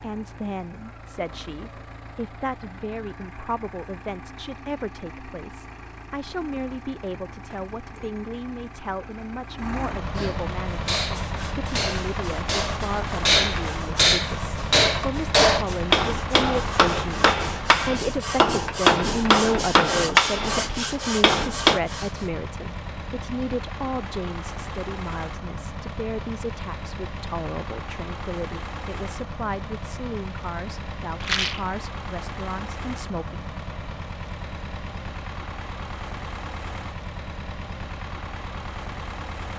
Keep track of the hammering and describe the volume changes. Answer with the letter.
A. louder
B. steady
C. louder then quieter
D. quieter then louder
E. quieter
A.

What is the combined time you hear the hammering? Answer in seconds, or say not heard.
12 s.